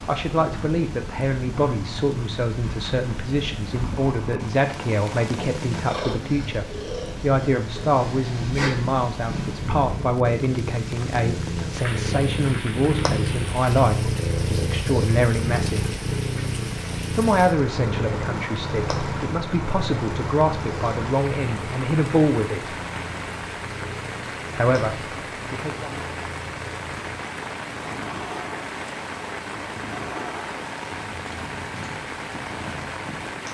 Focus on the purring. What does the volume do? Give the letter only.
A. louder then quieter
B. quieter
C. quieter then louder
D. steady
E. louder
A.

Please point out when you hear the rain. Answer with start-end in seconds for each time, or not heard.
0.0-33.5.